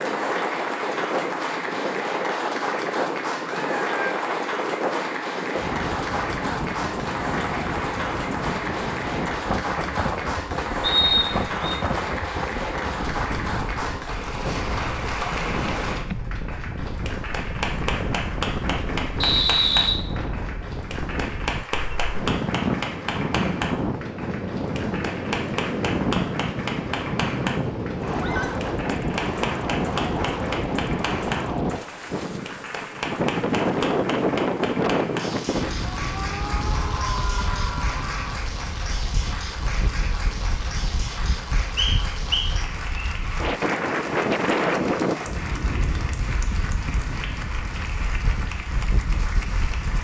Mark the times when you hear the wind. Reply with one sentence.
The wind can be heard from 0.0 to 49.9 s.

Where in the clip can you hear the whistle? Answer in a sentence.
You can hear the whistle from 10.8 to 11.6 s, from 19.2 to 20.0 s and from 41.8 to 43.1 s.